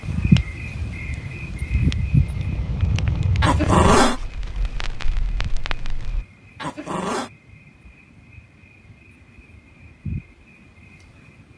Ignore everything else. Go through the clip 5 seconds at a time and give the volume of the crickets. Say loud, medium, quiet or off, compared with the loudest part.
loud, quiet, quiet.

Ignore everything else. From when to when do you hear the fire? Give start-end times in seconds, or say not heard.
0.0-6.2.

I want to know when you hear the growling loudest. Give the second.
4 s.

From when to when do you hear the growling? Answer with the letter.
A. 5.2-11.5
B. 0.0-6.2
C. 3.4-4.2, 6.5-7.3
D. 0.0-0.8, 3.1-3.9
C.